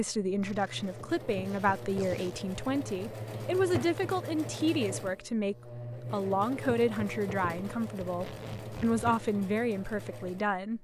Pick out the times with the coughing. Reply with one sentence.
The coughing can't be heard in this clip.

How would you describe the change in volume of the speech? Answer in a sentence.
The volume of the speech stays about the same.